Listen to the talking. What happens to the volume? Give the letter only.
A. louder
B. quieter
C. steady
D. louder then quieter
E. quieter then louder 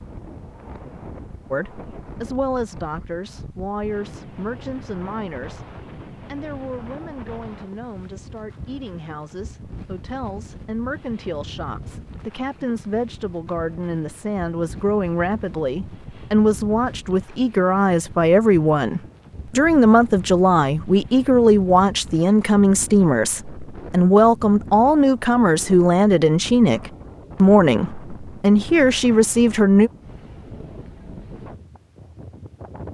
A.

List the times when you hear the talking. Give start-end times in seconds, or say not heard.
1.5-29.9.